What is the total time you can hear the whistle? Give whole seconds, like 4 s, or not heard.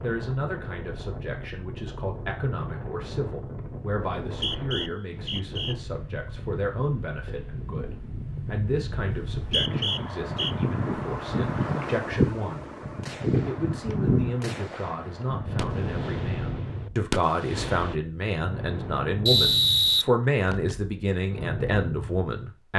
4 s.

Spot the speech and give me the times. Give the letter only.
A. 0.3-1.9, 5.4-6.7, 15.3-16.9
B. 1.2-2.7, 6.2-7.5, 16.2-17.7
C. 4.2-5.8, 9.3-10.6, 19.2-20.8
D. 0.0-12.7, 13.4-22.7
D.